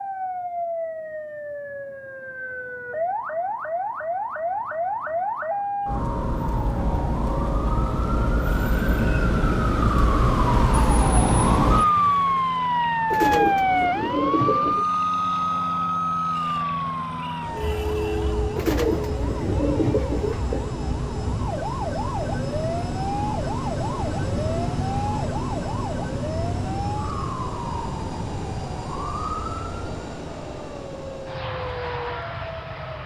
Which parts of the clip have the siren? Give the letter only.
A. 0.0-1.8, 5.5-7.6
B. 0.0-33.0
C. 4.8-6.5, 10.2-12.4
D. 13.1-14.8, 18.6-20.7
B.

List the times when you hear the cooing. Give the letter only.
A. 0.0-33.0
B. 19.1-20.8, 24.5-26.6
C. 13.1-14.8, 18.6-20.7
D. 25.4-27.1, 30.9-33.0
C.